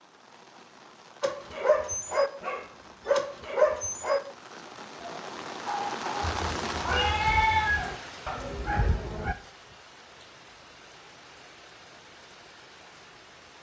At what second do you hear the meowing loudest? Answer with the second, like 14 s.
7 s.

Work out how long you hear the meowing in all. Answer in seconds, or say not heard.
2 s.